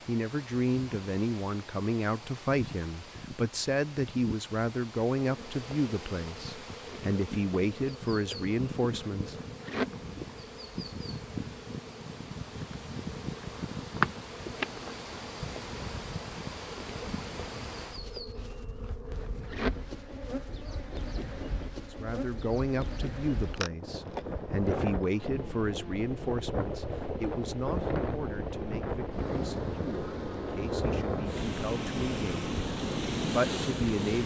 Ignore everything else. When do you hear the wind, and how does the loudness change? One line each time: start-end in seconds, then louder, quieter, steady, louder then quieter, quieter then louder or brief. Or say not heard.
0.0-34.2 louder.